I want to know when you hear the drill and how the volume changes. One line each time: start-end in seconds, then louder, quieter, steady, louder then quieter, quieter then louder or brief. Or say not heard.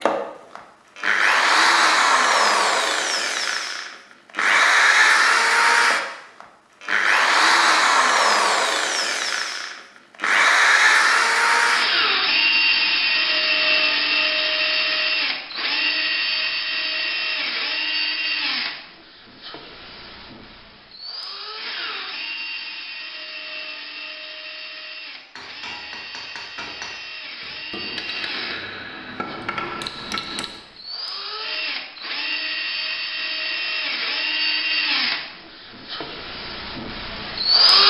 0.0-37.8 quieter then louder.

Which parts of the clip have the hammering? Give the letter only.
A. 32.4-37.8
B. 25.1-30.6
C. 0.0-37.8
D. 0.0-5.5
B.